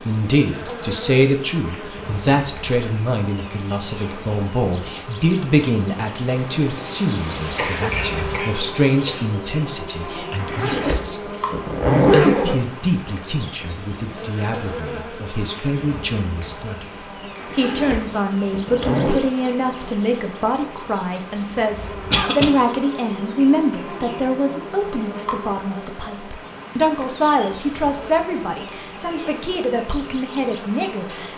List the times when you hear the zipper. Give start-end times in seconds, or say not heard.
10.3-12.6, 17.4-19.2.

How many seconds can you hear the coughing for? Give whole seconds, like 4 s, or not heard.
2 s.